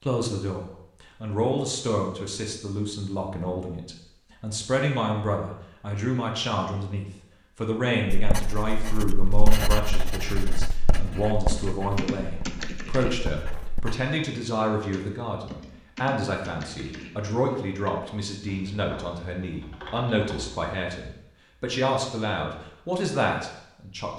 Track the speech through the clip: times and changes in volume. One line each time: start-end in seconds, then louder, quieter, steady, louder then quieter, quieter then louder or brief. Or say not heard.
0.0-24.1 steady.